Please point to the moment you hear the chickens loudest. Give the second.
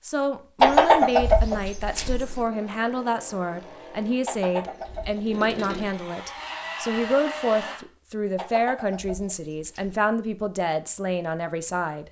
1 s.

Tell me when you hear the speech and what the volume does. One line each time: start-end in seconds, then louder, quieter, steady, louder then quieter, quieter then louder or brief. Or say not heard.
0.0-12.0 steady.